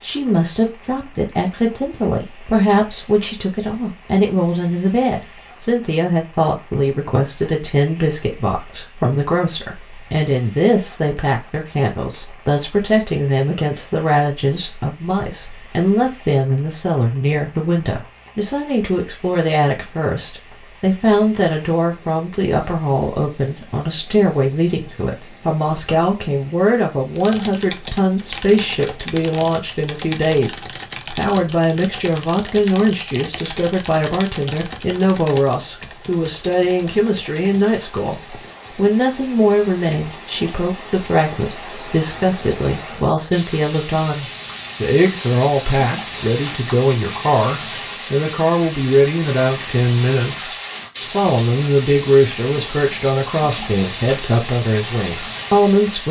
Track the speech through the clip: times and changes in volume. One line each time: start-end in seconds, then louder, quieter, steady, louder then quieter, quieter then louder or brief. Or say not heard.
0.0-56.0 steady.